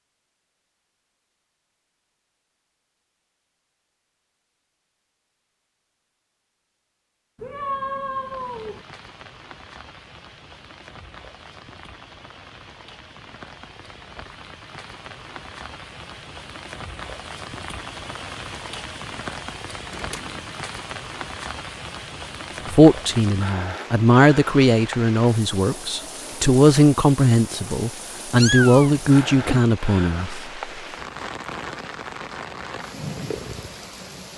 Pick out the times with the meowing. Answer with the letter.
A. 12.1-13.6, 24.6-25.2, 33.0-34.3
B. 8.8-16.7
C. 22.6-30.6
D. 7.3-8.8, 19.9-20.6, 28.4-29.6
D.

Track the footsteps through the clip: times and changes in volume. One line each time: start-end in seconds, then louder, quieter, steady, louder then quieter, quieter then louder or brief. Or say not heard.
not heard.